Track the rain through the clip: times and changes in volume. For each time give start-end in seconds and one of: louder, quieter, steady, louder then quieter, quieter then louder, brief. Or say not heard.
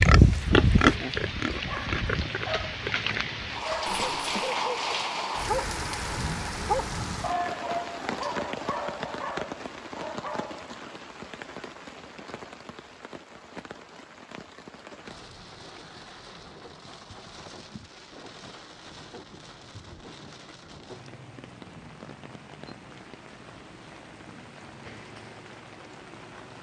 0.2-26.5 quieter.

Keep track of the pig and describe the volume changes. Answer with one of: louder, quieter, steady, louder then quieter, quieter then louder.
quieter.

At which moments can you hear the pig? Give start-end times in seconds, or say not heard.
0.0-4.5.